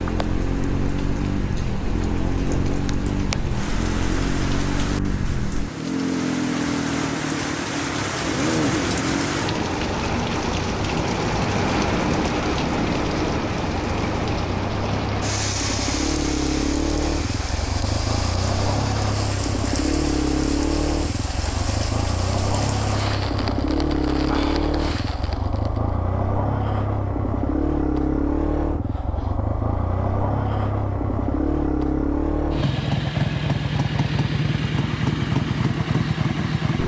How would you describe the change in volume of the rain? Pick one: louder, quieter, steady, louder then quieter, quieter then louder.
louder then quieter.